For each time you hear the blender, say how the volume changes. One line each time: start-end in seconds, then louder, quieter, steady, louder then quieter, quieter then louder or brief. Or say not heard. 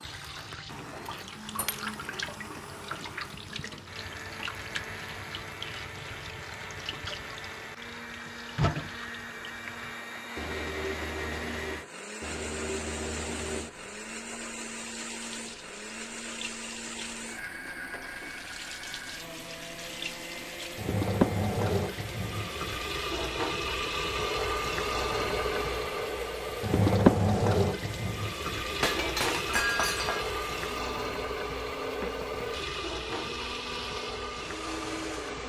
0.0-35.4 steady.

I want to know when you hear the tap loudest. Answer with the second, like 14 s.
27 s.